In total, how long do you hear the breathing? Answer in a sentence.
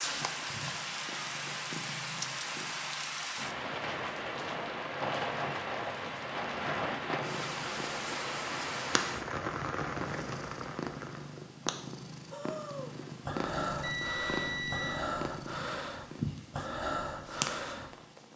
The breathing can be heard for 6 seconds in total.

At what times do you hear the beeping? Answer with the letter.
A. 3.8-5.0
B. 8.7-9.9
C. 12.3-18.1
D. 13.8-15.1
D.